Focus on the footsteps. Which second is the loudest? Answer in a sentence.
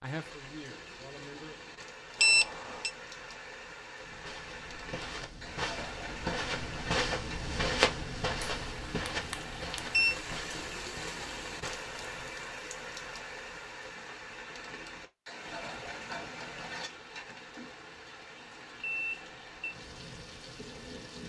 The loudest moment of the footsteps is at 8 seconds.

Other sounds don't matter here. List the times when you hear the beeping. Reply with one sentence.
You can hear the beeping from 2.2 to 2.9 s, from 9.3 to 10.2 s and from 18.8 to 19.8 s.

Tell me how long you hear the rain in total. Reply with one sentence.
You can hear the rain for 21 seconds altogether.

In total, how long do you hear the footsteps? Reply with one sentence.
The footsteps can be heard for 8 seconds in total.